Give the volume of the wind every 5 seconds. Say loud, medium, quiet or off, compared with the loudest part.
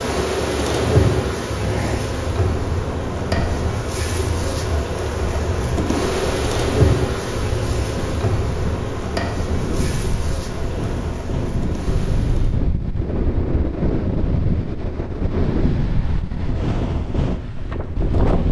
medium, medium, loud, loud.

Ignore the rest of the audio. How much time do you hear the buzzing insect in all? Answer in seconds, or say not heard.
13 s.